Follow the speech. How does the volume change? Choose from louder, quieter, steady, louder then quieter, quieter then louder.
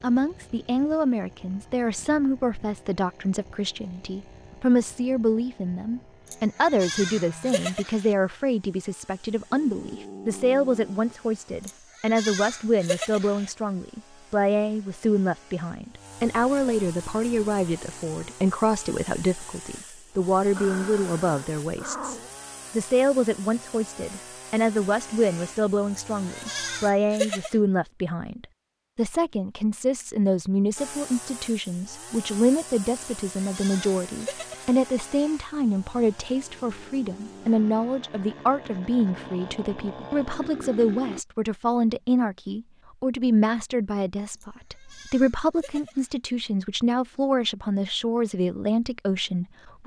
steady.